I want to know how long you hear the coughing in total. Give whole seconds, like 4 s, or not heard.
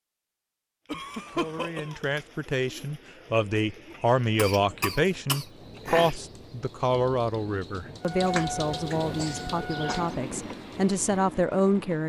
5 s.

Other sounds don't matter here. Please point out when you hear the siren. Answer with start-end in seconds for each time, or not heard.
8.0-10.2.